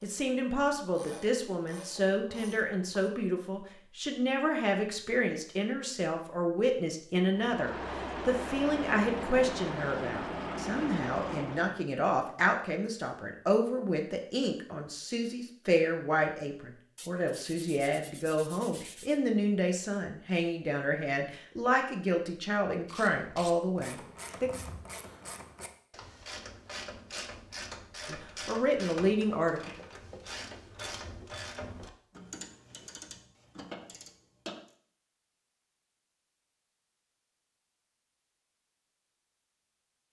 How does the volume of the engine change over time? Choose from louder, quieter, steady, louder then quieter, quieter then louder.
steady.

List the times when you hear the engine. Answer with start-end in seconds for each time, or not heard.
7.3-11.8.